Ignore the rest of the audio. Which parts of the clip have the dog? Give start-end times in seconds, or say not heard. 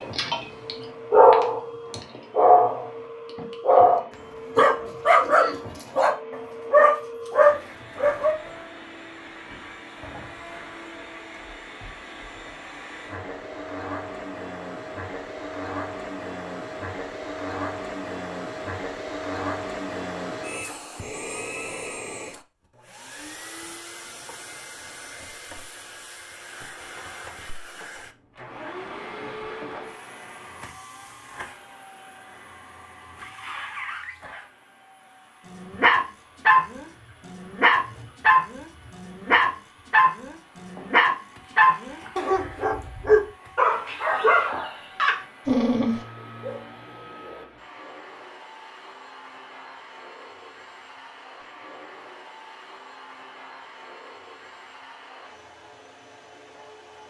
0.0-8.3, 35.5-46.6.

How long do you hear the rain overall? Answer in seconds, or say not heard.
not heard.